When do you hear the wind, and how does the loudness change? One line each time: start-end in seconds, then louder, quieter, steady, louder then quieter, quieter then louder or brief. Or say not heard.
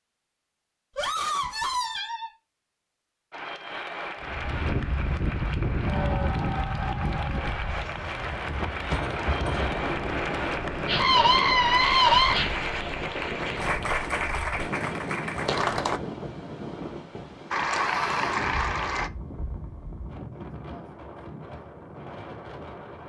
4.2-23.0 quieter.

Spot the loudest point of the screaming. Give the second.
12 s.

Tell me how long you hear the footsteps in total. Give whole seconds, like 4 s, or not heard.
not heard.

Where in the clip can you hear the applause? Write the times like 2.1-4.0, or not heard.
3.3-16.0, 17.5-19.1.